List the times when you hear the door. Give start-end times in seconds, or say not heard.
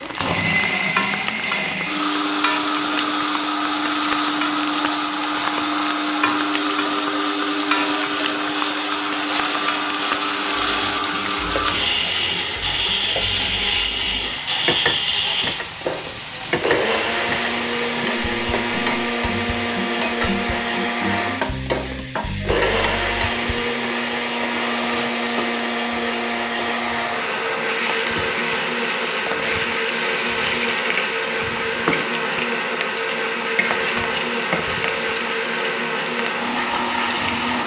not heard.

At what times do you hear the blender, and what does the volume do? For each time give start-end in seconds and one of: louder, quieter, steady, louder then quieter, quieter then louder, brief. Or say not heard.
0.0-37.6 steady.